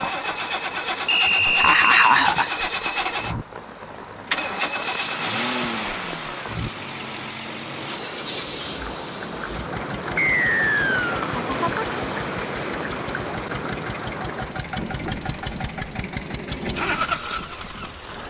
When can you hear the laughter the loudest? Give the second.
2 s.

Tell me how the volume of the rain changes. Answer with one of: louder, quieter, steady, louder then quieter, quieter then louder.
louder then quieter.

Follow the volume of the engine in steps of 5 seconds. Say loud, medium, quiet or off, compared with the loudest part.
loud, loud, medium, loud.